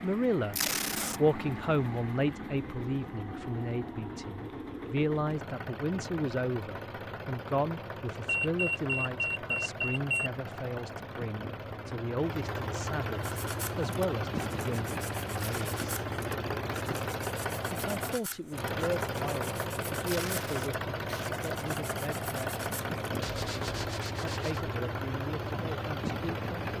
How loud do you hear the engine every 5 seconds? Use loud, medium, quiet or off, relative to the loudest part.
medium, medium, loud, loud, loud, loud.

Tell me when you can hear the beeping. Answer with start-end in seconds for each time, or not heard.
8.2-10.3.